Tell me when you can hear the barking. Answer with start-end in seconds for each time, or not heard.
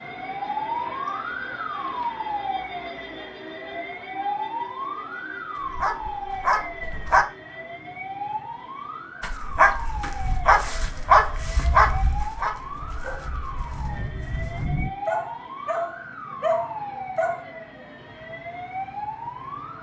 5.5-7.2, 9.2-17.4.